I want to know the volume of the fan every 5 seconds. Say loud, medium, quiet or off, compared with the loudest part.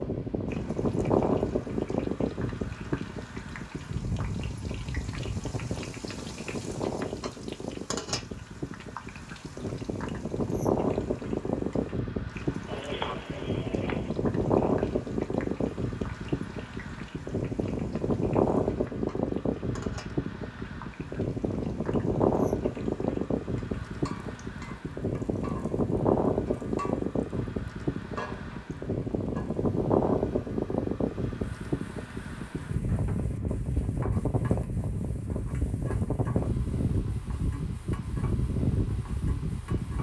loud, medium, loud, loud, loud, loud, loud, loud.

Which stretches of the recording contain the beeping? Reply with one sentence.
The beeping can be heard from 12.7 to 14.2 s.